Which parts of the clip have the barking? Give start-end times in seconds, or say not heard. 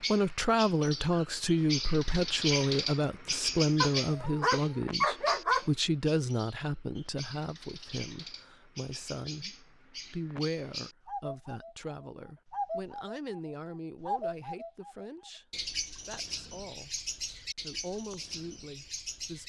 3.8-5.7.